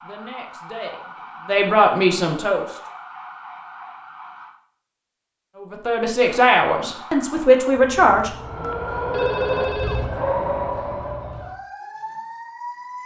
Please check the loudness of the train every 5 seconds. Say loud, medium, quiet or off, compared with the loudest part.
off, loud, loud.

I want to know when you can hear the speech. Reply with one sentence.
You can hear the speech from 0.0 to 2.6 s and from 5.6 to 8.3 s.